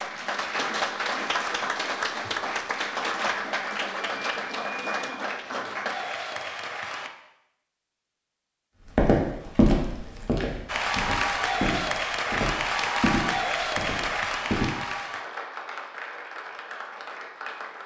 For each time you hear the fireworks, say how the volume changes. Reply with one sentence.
You can't hear the fireworks here.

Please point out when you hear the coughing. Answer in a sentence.
The coughing can't be heard in this clip.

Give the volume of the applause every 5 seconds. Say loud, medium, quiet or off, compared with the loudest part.
loud, medium, loud, medium.